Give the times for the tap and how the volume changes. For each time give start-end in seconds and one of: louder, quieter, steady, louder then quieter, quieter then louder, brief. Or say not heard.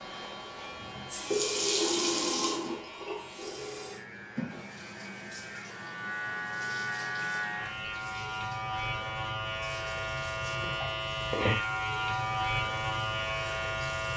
0.0-14.1 quieter.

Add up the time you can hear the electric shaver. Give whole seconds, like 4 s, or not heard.
14 s.